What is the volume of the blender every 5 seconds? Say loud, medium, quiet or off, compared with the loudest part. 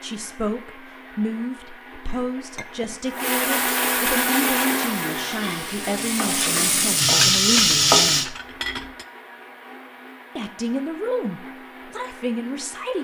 loud, medium, quiet.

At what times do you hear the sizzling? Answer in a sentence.
You can hear the sizzling from 4.3 to 8.2 s.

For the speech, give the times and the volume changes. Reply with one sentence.
The speech can be heard from 0.0 to 8.3 s, at a steady volume; and briefly from 10.3 to 13.0 s.